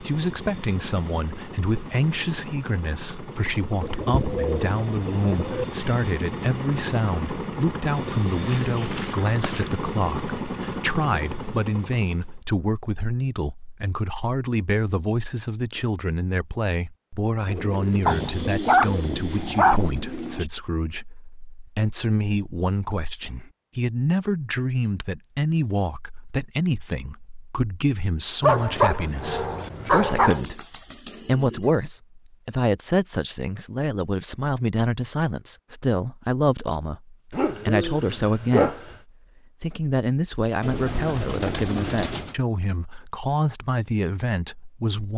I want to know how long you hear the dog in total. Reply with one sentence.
You can hear the dog for 7 seconds altogether.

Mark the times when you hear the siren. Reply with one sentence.
You can't hear the siren here.